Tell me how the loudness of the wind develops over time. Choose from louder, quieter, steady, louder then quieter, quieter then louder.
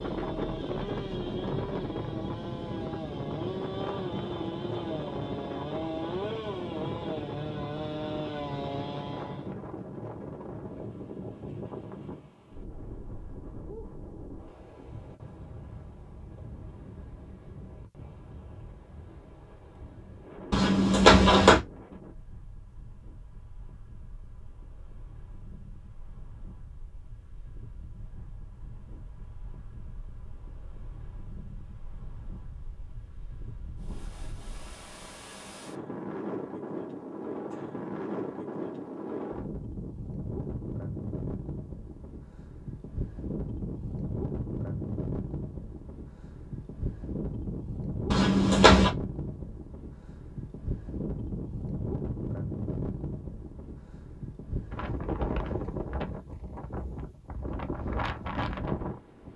quieter then louder.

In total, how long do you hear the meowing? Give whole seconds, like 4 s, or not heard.
2 s.